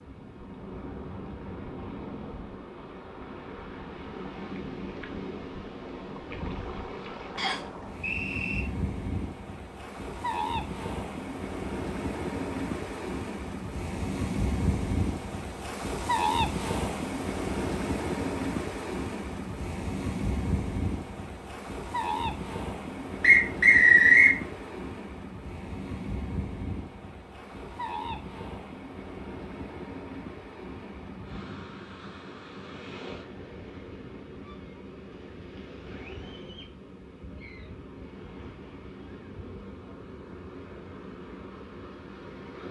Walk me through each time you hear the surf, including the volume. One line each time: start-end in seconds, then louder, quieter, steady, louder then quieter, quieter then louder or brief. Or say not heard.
0.0-42.6 louder then quieter.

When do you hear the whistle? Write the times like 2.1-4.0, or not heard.
7.3-8.6, 23.2-24.4.